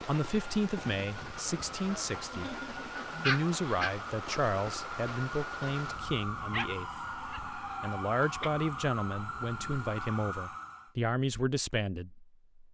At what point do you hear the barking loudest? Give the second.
3 s.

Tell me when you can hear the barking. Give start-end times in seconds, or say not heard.
2.3-3.9, 6.5-8.5.